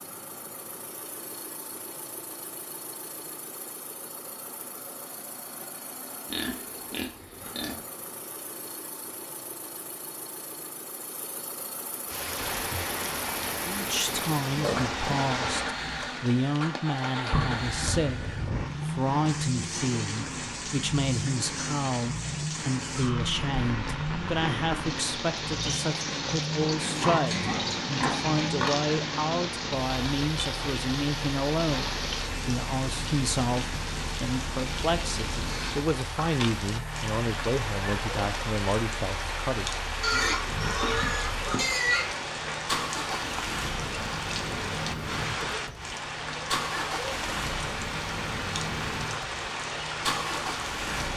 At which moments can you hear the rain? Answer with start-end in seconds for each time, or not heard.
12.1-51.1.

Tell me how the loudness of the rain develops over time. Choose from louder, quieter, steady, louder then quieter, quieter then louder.
steady.